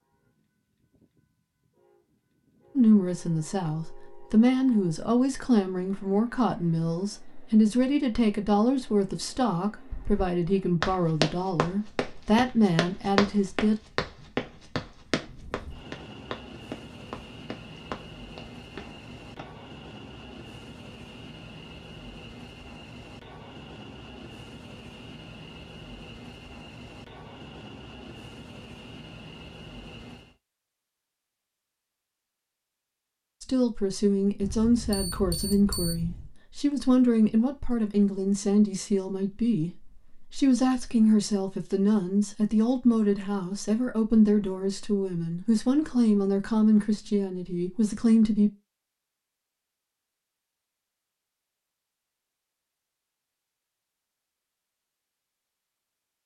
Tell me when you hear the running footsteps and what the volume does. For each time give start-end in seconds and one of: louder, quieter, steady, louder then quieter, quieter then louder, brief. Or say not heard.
9.9-19.4 quieter.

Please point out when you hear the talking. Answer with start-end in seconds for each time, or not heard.
2.8-13.8, 33.4-48.5.